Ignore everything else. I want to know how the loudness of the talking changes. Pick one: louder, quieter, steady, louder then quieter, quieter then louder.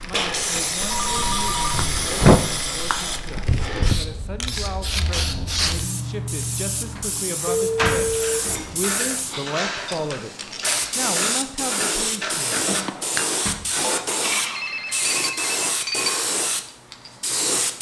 louder.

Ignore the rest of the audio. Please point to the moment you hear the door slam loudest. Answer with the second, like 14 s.
2 s.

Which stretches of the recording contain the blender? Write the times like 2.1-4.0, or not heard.
not heard.